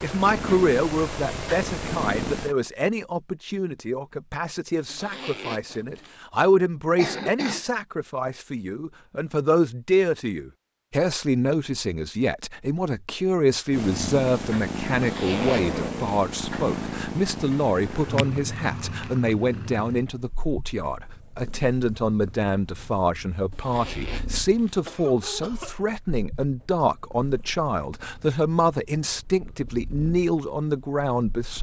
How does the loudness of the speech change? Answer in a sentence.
The volume of the speech stays about the same.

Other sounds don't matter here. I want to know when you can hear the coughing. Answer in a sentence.
You can hear the coughing from 7.0 to 7.6 s and from 24.9 to 25.9 s.